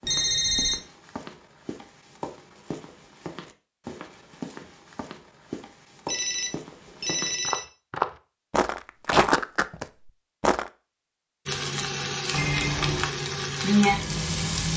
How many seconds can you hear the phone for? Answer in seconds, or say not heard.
3 s.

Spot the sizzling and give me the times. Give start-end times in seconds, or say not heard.
11.4-14.7.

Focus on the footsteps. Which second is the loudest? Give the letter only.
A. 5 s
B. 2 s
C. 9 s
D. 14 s
C.